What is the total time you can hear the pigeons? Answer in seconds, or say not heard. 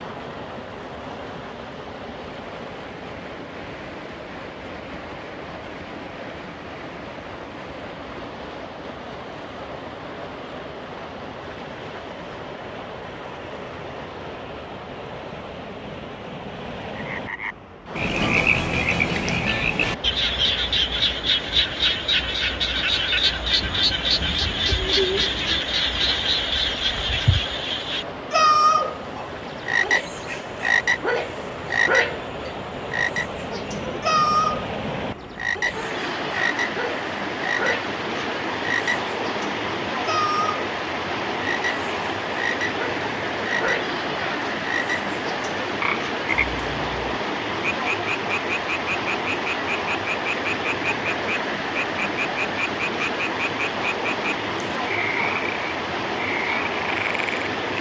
2 s.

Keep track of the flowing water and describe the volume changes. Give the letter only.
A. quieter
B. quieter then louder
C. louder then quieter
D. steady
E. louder
E.